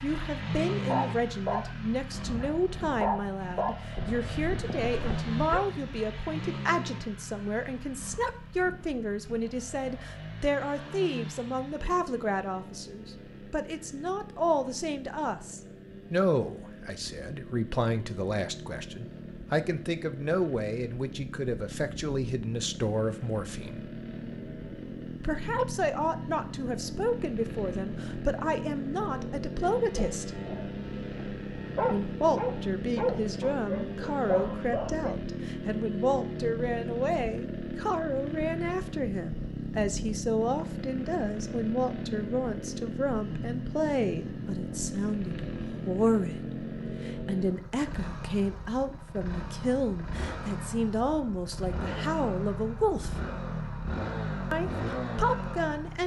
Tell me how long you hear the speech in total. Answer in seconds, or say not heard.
52 s.